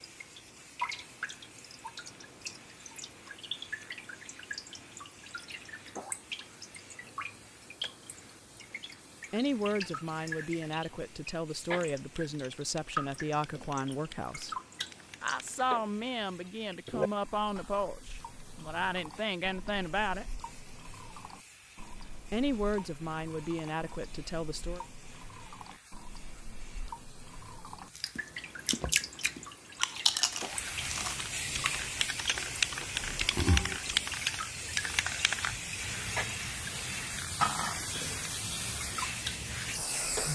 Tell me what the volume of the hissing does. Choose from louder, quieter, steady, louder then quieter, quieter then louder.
louder.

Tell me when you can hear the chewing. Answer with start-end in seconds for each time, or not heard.
27.8-34.0.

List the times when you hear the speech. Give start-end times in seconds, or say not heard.
9.3-14.6, 15.2-20.4, 22.3-24.9.